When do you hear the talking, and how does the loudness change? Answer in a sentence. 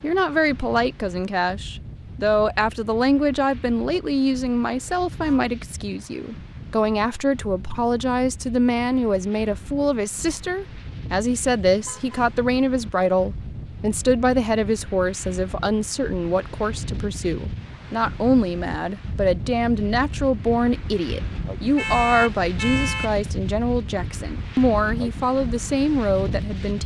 You can hear the talking from 0.0 to 26.8 s, at a steady volume.